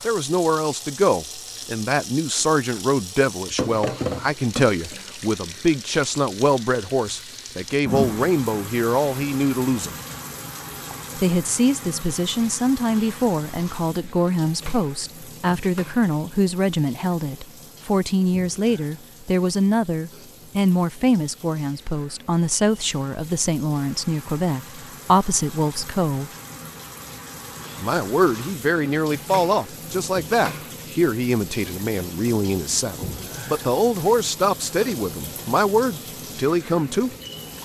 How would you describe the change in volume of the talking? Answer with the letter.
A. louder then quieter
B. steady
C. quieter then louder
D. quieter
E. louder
B.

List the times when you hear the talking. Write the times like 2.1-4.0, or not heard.
0.0-9.9, 11.2-26.3, 27.8-37.1.